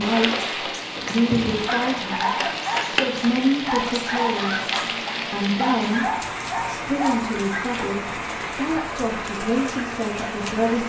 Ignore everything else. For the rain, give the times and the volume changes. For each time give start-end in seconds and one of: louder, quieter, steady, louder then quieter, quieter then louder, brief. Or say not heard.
0.0-10.8 steady.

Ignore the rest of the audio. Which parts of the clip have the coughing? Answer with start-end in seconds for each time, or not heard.
0.9-1.6.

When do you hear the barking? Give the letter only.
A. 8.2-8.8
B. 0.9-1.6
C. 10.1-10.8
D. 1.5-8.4
D.